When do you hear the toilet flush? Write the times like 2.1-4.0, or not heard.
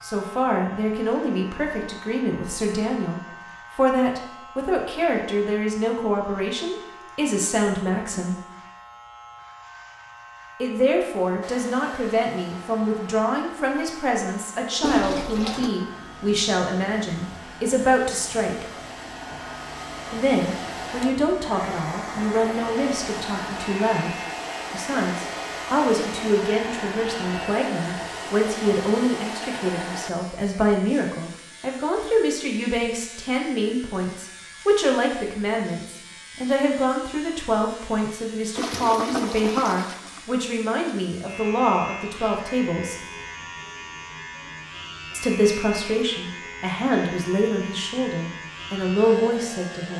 14.8-15.8, 38.5-40.2.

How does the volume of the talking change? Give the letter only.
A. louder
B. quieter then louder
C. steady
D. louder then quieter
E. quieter
C.